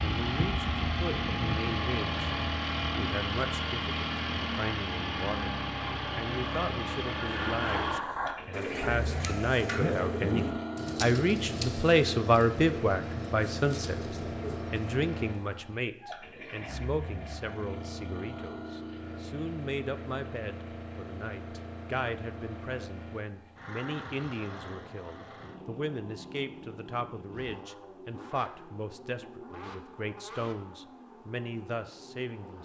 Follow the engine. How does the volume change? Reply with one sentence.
The volume of the engine goes down.